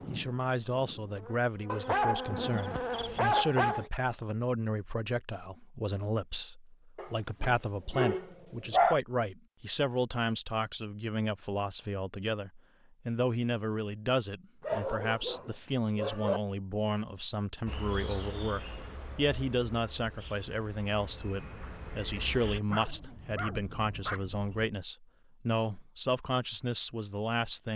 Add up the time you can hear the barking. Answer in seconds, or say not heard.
8 s.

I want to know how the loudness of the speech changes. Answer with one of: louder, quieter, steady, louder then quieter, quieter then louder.
steady.